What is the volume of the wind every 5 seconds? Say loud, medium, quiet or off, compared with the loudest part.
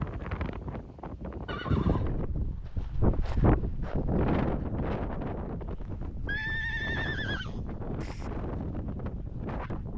loud, medium.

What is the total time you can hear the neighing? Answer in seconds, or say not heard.
3 s.